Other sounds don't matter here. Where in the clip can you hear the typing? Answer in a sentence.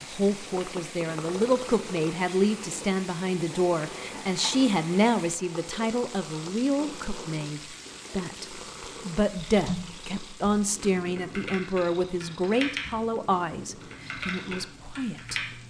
You can hear the typing from 9.6 to 15.4 s.